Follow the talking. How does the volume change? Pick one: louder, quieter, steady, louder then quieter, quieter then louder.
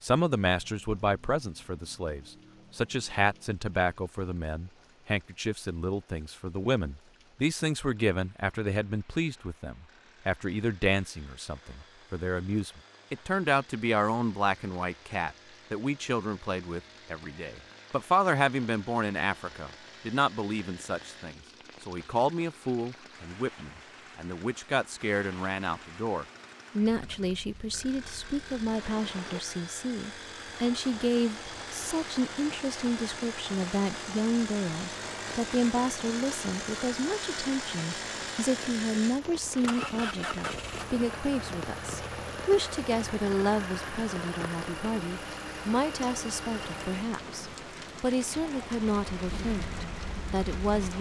steady.